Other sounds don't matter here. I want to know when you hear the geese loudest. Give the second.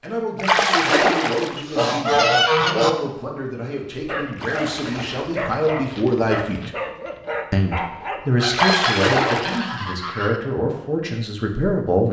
2 s.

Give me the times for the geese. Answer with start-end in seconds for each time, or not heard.
1.6-3.0, 8.3-10.4.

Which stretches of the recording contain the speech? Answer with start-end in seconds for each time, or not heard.
0.0-6.7, 7.5-12.0.